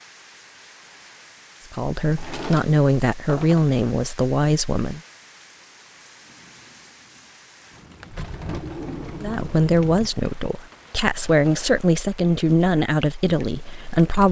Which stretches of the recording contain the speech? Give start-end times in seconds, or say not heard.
1.7-5.0, 9.2-14.2.